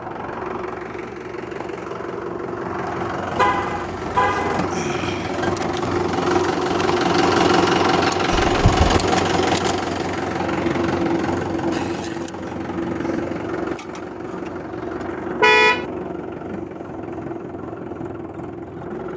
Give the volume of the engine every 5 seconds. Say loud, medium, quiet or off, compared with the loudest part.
medium, loud, medium, medium.